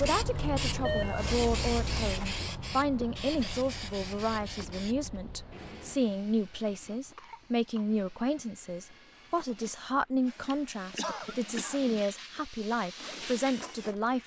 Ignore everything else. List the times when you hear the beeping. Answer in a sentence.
The beeping can be heard from 0.8 to 1.4 s.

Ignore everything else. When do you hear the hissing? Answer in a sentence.
The hissing can be heard from 0.0 to 14.2 s.